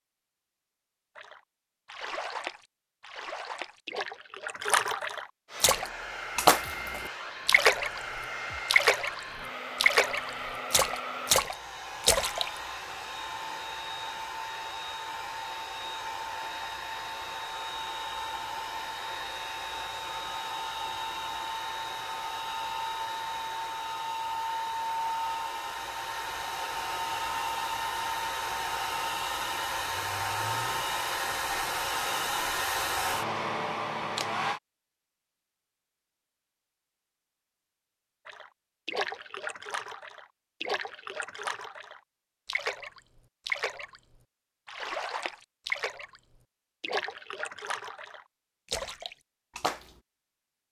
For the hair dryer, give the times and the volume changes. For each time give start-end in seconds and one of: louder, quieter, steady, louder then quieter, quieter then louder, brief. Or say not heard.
5.5-34.6 louder.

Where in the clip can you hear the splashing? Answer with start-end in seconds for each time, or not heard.
1.1-8.0, 8.7-9.2, 9.8-12.5, 38.2-44.0, 44.6-46.2, 46.8-50.0.